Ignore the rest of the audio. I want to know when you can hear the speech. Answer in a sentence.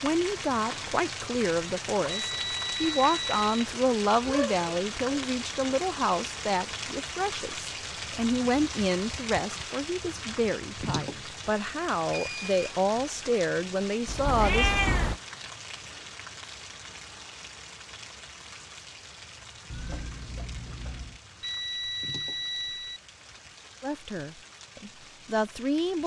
The speech can be heard from 0.0 to 14.8 s and from 23.8 to 26.0 s.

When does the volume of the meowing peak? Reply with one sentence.
The volume of the meowing peaks at 15 seconds.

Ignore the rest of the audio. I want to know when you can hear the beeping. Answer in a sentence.
You can hear the beeping from 2.0 to 3.5 s, from 12.1 to 12.6 s and from 21.4 to 23.0 s.